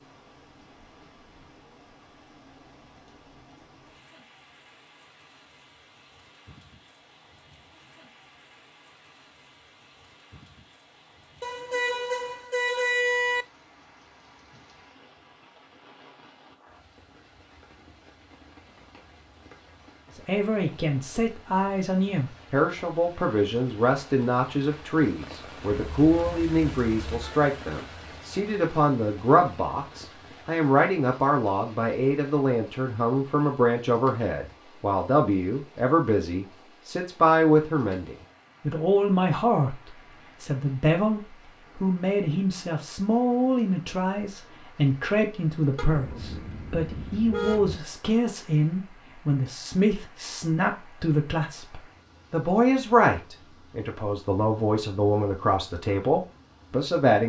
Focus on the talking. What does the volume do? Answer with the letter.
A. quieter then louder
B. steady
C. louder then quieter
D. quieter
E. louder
B.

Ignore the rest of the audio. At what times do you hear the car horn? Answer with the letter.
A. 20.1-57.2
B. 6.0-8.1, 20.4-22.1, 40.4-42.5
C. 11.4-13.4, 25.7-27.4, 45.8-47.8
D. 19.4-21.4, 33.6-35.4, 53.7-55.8
C.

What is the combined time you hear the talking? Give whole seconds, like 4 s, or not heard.
37 s.